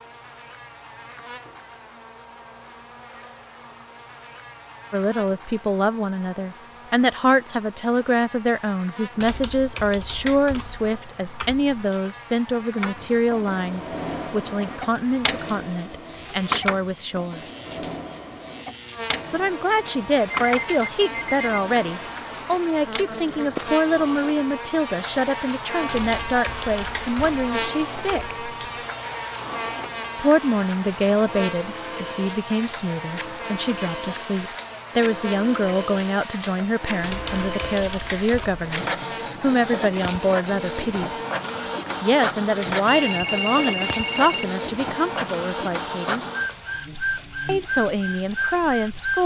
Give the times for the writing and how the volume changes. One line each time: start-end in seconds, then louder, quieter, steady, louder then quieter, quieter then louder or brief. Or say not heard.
not heard.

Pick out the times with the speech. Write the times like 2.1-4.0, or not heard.
4.9-17.4, 19.3-28.4, 30.1-41.1, 42.0-46.2, 47.5-49.2.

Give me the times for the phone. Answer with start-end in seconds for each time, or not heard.
19.9-21.6, 42.9-44.5.